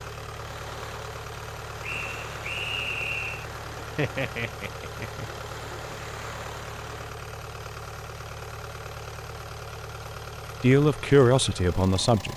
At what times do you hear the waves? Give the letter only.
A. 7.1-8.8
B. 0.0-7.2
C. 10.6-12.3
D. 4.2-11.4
B.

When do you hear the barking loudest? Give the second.
4 s.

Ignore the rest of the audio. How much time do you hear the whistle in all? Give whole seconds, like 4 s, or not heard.
2 s.